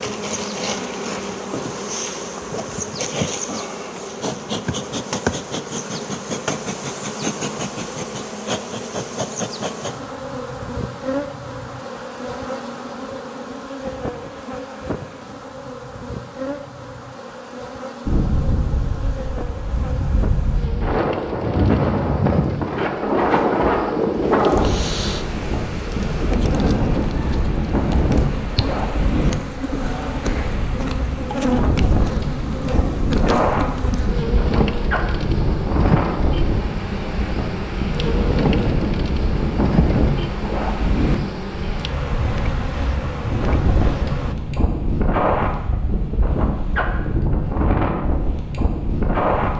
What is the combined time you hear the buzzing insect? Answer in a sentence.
You can hear the buzzing insect for 44 seconds altogether.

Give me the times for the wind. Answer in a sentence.
The wind can be heard from 18.1 to 49.5 s.